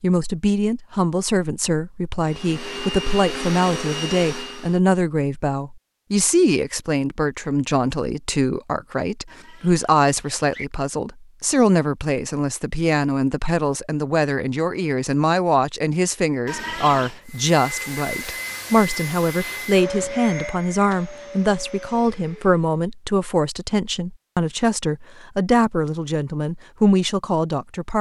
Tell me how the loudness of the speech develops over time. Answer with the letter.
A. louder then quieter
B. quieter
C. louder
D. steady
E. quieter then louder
D.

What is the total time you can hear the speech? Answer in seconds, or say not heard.
28 s.